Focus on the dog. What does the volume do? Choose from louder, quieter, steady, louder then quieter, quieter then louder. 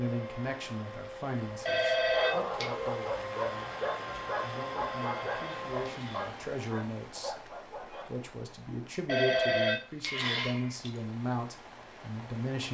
quieter.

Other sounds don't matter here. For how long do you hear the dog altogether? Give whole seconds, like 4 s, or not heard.
6 s.